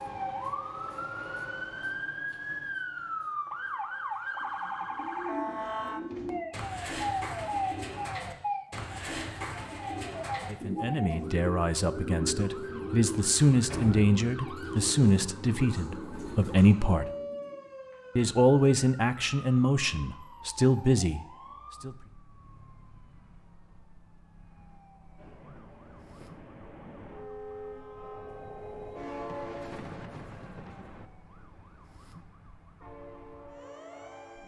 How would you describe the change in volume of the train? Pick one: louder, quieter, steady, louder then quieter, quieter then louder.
louder then quieter.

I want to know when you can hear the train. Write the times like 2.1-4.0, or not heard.
25.1-34.4.